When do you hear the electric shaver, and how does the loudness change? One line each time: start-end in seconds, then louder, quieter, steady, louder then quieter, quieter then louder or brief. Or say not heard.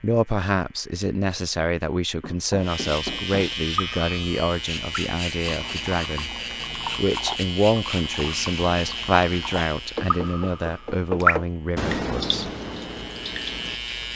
0.0-14.1 louder then quieter.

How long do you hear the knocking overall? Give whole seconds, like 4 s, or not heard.
3 s.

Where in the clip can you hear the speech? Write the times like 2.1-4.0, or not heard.
0.0-12.5.